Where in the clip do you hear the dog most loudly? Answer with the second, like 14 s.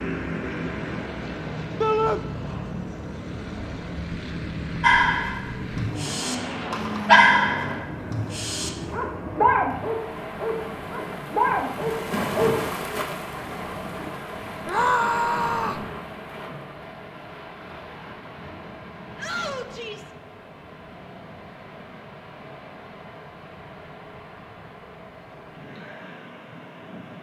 7 s.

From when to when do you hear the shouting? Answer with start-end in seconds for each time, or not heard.
1.8-2.2, 14.7-15.8, 19.1-20.1.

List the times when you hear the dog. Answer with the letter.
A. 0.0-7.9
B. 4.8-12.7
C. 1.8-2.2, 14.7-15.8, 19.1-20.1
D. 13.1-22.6
B.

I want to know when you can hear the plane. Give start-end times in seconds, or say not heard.
0.0-9.6.